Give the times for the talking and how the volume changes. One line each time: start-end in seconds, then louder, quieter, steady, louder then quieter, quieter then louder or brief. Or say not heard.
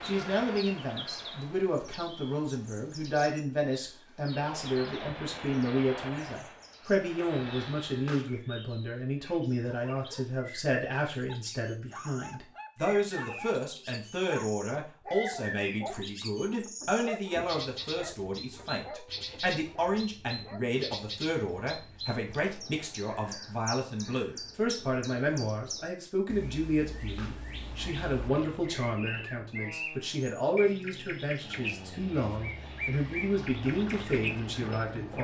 0.0-35.1 steady.